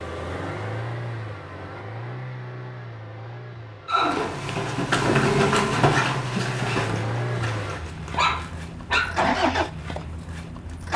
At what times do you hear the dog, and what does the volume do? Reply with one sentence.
The dog can be heard from 3.9 to 9.2 s, getting quieter then louder.